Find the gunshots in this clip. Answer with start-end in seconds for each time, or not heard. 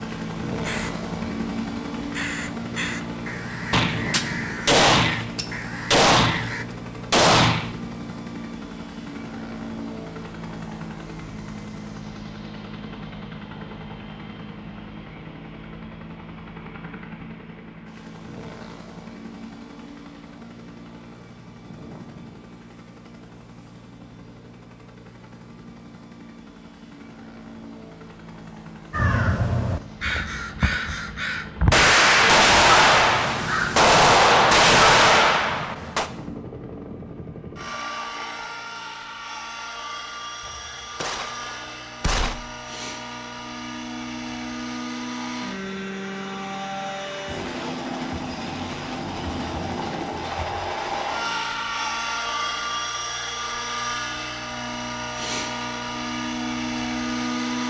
3.7-7.8, 31.7-36.1, 40.5-42.4.